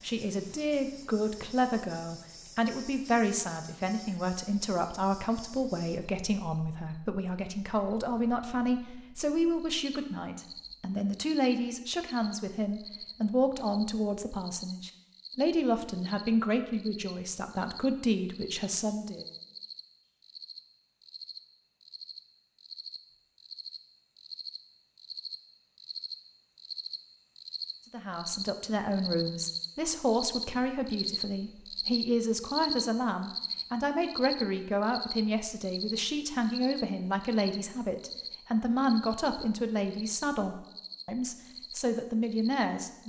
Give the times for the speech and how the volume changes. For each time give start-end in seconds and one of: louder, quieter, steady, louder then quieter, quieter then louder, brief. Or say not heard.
0.0-19.2 steady
27.9-43.0 steady.